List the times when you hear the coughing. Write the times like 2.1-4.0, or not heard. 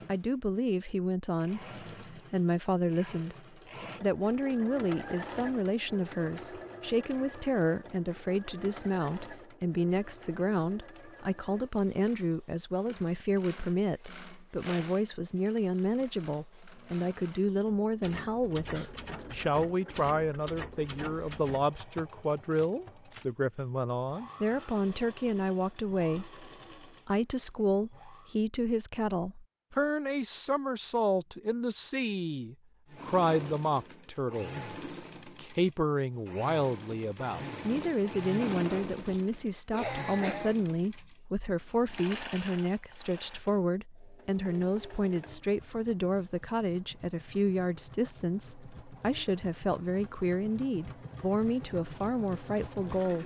18.7-20.4, 39.0-41.0.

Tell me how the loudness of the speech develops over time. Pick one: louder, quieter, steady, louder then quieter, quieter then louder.
steady.